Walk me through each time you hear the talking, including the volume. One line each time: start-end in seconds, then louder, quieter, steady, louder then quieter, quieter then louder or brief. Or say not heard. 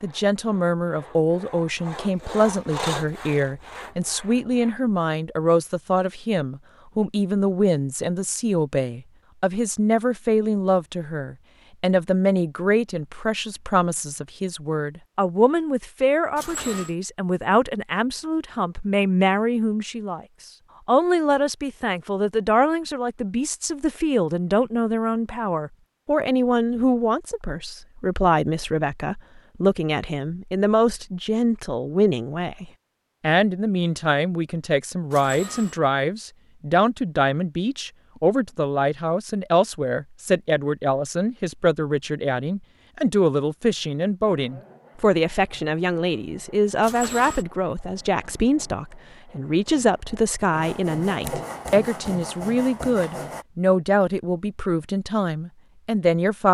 0.0-20.2 steady
20.9-56.4 steady.